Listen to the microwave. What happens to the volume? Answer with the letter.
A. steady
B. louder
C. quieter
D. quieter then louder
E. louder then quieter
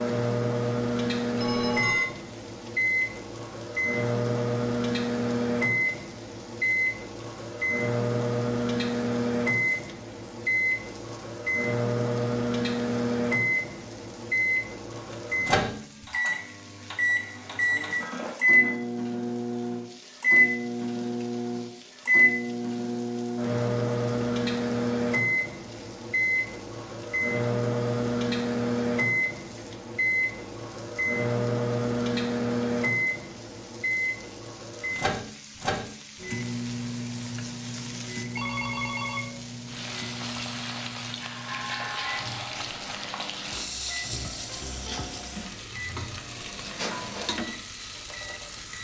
C.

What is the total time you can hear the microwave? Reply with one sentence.
The microwave can be heard for 49 seconds in total.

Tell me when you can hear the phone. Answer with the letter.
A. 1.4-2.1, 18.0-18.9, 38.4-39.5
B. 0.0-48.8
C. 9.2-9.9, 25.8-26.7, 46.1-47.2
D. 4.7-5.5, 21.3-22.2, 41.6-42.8
A.